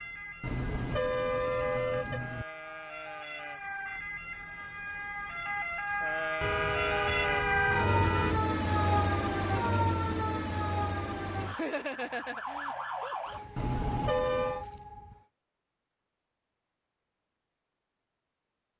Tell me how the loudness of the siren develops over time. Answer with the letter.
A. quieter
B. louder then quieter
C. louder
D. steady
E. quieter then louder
B.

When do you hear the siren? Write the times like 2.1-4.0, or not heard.
0.0-15.2.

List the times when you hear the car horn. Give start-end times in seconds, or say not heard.
0.4-2.5, 6.4-8.4, 13.6-14.7.